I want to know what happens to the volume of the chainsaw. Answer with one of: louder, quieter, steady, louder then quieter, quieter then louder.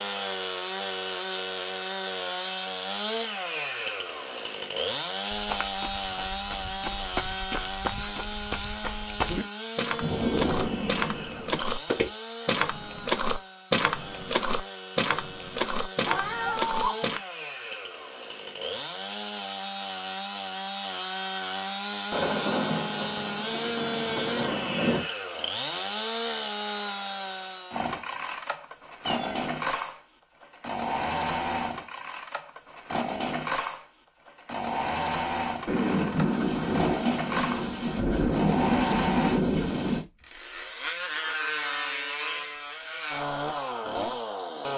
quieter then louder.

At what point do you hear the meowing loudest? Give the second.
17 s.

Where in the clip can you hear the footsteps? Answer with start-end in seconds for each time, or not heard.
5.3-17.2.